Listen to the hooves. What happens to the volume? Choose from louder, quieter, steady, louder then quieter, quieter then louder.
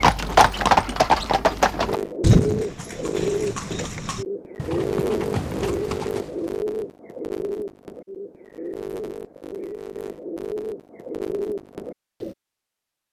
quieter.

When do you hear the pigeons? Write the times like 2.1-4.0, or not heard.
1.8-12.3.